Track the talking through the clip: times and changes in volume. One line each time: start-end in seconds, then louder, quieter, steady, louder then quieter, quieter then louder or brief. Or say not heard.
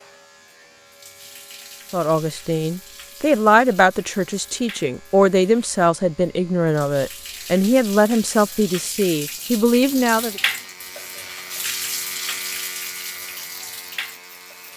1.9-10.4 steady.